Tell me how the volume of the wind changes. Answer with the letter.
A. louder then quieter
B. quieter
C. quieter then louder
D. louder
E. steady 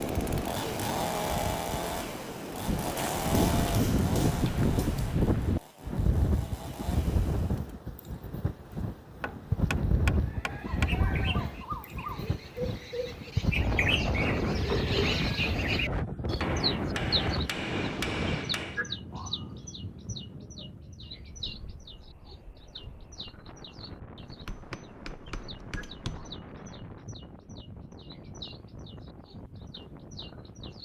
B.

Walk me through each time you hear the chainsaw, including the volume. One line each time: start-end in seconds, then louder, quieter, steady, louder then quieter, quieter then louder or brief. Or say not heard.
0.0-7.8 quieter.